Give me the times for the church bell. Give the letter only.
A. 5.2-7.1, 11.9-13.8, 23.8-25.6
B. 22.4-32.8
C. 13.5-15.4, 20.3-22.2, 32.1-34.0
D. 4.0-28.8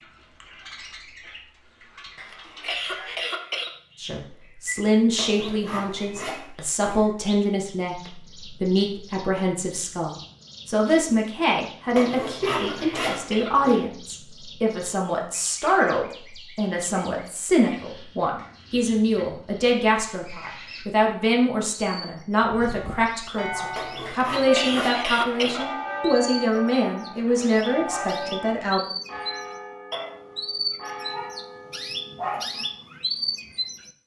B.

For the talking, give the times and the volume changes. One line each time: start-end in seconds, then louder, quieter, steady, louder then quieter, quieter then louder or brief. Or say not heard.
4.0-28.8 steady.